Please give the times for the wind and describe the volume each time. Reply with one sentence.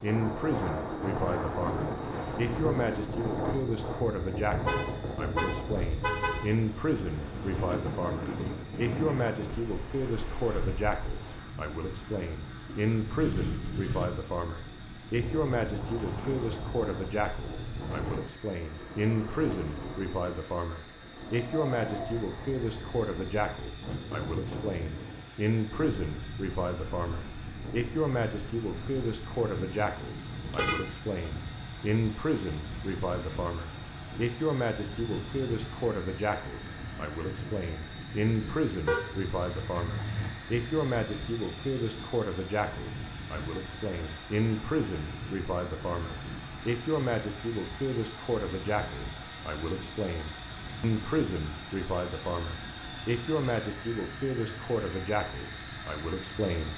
The wind can be heard from 0.0 to 56.5 s, getting quieter.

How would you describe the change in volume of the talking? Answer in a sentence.
The volume of the talking stays about the same.